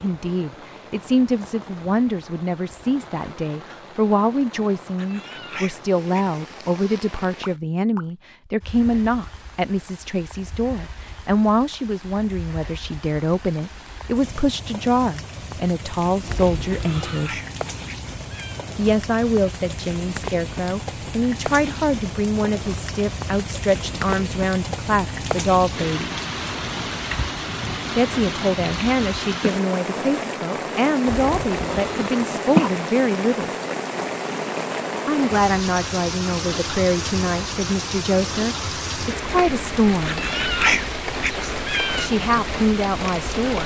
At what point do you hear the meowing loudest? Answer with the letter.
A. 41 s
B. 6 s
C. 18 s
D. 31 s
A.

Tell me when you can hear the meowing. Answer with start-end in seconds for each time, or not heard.
5.0-6.4, 16.9-18.6, 40.0-42.1.